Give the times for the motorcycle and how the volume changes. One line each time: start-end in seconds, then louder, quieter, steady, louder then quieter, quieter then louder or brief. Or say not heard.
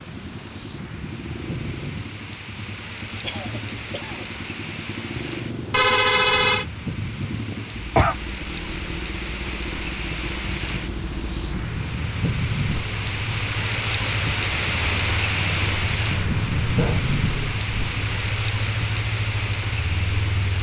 0.0-20.5 louder.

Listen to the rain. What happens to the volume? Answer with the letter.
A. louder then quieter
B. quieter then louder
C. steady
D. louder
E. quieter
D.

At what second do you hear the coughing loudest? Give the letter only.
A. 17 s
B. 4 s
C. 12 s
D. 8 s
D.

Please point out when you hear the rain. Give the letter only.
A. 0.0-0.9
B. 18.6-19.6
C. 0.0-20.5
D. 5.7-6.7
C.